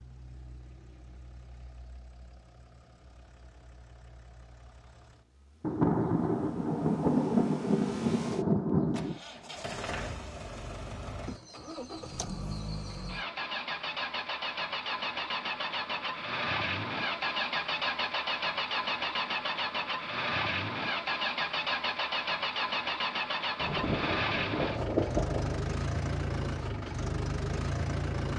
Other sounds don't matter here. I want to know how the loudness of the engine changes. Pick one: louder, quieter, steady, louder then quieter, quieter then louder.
louder.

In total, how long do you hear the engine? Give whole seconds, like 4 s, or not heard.
28 s.